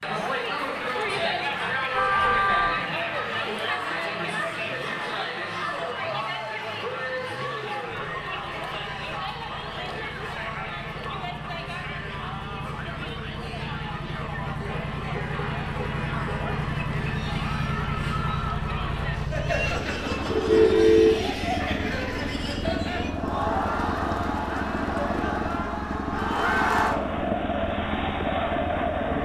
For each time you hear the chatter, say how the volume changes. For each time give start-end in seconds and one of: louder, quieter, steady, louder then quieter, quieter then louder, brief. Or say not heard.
0.0-29.2 quieter then louder.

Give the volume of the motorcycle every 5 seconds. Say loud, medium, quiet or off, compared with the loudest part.
quiet, quiet, medium, loud, loud, loud.